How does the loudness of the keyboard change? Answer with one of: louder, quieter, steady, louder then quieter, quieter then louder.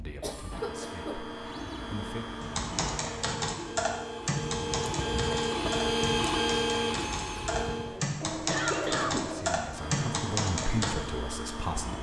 quieter then louder.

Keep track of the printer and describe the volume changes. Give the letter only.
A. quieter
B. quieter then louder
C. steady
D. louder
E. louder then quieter
E.